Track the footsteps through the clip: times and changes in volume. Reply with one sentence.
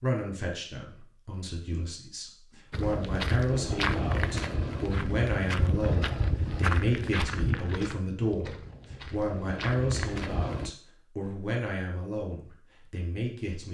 The footsteps can be heard from 2.7 to 10.7 s, getting quieter.